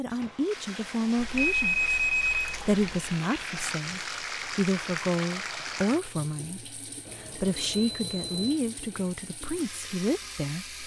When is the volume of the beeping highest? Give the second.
2 s.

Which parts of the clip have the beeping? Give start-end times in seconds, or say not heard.
1.4-2.4, 7.0-8.6.